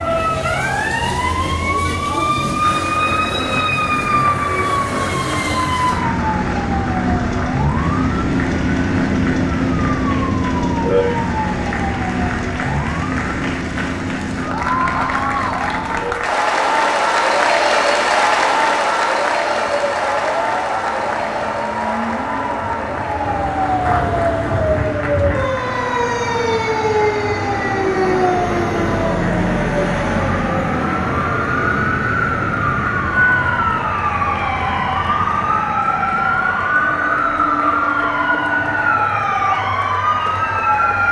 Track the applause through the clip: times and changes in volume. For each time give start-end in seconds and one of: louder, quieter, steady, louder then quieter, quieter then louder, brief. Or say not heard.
2.6-41.0 louder then quieter.